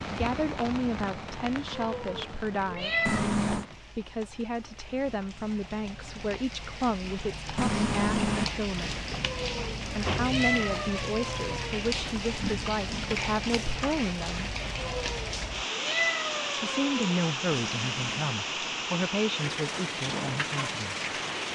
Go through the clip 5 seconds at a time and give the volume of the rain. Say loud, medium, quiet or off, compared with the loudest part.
medium, medium, loud, loud, loud.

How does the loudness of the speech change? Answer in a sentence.
The volume of the speech stays about the same.